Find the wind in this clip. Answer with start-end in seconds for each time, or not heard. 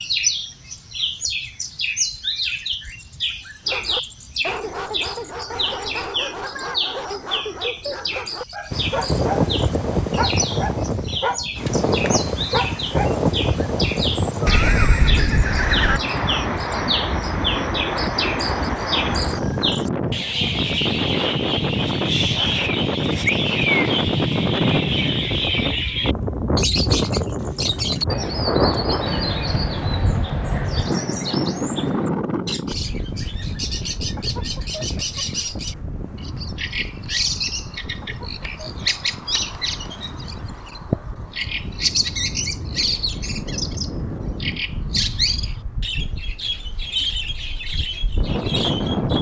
8.7-49.1.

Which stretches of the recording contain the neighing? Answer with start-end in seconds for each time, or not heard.
14.4-16.0.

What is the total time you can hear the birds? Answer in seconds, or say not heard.
49 s.